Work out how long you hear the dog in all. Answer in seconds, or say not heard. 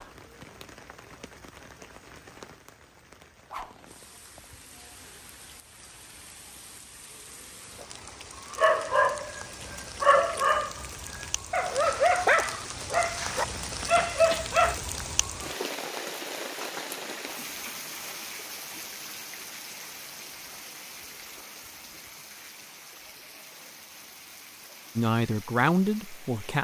6 s.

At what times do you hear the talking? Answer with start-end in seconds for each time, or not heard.
24.9-26.5.